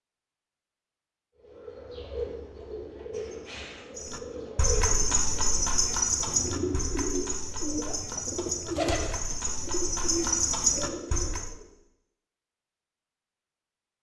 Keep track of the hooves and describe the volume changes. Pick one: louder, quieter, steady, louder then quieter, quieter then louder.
quieter then louder.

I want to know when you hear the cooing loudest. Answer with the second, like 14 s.
9 s.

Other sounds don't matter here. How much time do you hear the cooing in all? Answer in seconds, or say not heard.
10 s.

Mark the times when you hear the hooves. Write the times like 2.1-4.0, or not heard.
4.0-11.5.